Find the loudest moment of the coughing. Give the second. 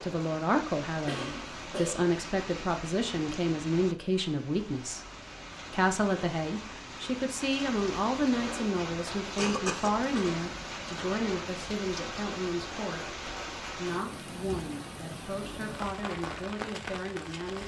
10 s.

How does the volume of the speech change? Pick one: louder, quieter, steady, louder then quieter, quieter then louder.
quieter.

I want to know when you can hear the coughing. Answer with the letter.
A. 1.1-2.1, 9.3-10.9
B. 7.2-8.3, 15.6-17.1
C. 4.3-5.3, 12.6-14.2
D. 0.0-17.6
A.